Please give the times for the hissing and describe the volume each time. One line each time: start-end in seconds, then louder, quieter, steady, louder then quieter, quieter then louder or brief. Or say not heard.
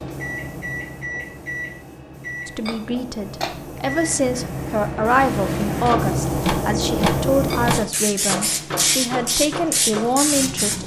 0.0-10.8 louder.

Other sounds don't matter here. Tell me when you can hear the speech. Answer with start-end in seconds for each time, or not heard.
2.5-10.8.